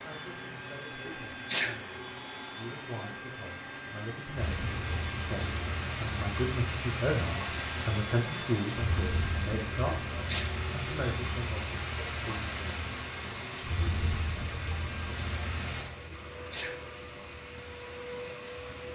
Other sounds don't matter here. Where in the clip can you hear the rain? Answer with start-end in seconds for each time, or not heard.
4.3-18.9.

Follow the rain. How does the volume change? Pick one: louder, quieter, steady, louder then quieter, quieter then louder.
quieter.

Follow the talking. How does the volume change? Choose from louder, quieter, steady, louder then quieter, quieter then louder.
louder then quieter.